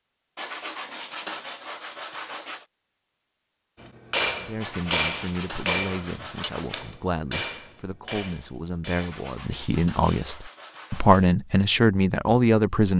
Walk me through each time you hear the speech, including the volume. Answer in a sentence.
The speech can be heard from 4.3 to 12.9 s, getting louder.